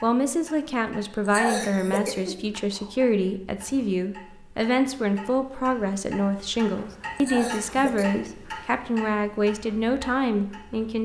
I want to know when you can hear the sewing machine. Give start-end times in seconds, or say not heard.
not heard.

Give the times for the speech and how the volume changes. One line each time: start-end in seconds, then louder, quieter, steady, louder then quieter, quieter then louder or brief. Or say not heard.
0.0-11.0 steady.